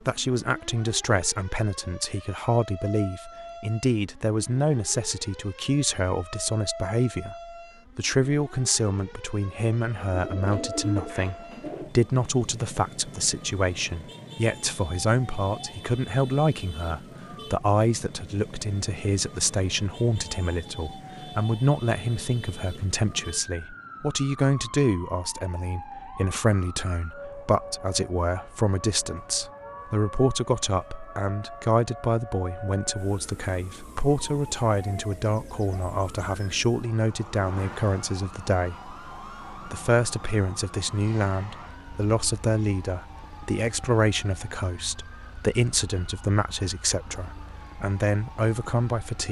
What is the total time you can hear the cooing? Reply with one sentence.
The cooing can be heard for 2 seconds in total.